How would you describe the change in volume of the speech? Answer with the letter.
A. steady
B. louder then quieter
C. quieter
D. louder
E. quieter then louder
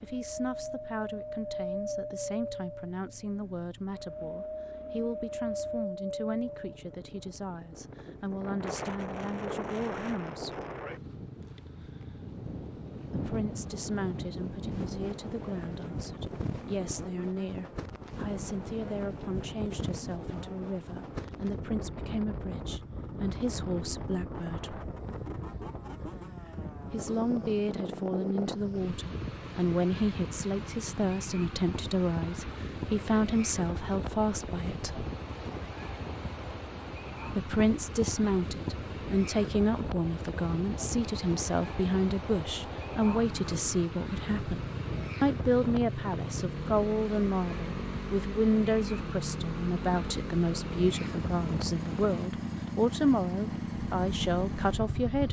D.